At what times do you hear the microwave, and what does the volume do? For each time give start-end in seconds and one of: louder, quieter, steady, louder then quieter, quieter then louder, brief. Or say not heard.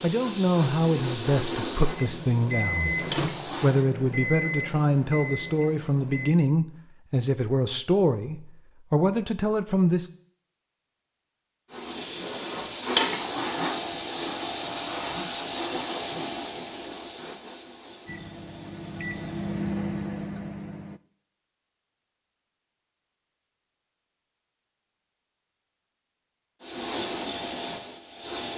1.9-6.3 quieter
18.1-21.0 brief.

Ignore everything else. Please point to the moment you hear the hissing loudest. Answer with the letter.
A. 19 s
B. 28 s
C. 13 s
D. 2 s
C.